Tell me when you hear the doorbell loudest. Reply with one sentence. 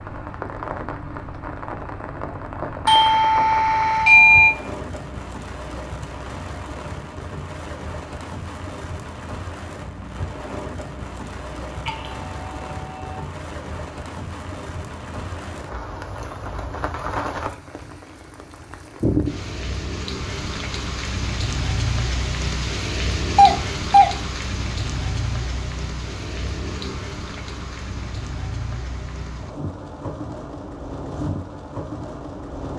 The volume of the doorbell peaks at 4 seconds.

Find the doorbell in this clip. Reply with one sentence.
You can hear the doorbell from 2.9 to 4.5 s, from 11.8 to 13.2 s and from 23.4 to 24.1 s.